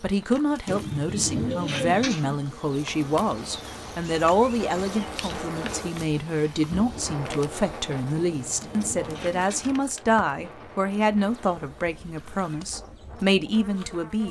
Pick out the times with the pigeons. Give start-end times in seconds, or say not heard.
0.7-2.4, 8.3-9.8.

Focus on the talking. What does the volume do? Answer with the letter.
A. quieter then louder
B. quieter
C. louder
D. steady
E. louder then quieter
D.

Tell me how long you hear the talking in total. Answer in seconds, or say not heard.
14 s.